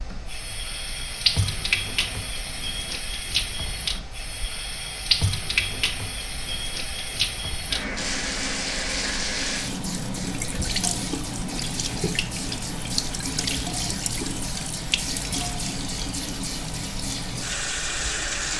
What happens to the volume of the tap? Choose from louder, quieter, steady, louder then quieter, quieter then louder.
steady.